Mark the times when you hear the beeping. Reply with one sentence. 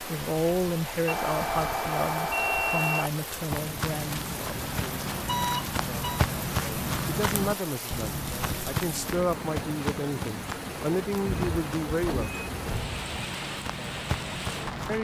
The beeping can be heard from 1.1 to 3.1 s, from 5.2 to 6.2 s and from 11.2 to 13.2 s.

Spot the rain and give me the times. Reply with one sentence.
You can hear the rain from 0.0 to 14.9 s.